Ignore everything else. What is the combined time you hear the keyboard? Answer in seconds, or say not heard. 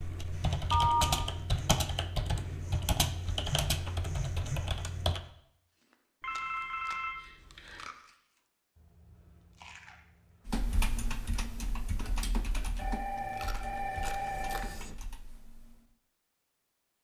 11 s.